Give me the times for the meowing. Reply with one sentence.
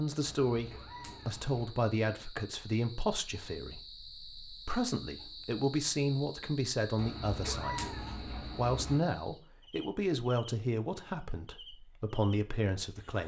The meowing can be heard from 0.2 to 1.8 s and from 7.0 to 9.0 s.